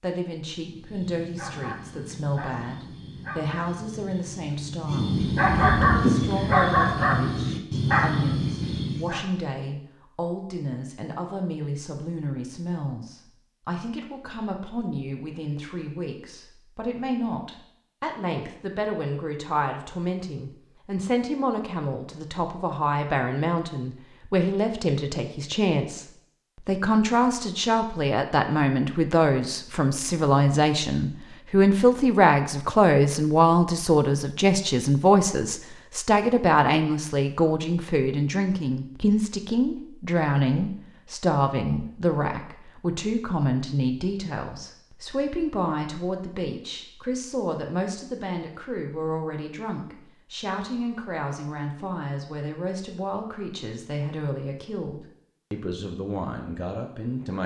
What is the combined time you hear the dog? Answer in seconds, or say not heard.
9 s.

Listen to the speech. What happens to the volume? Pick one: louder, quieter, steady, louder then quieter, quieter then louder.
louder then quieter.